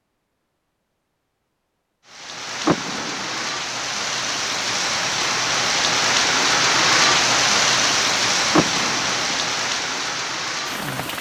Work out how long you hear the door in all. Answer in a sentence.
You can hear the door for 2 seconds altogether.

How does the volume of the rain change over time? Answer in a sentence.
The volume of the rain goes up, then down.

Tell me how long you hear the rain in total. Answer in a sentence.
You can hear the rain for 9 seconds altogether.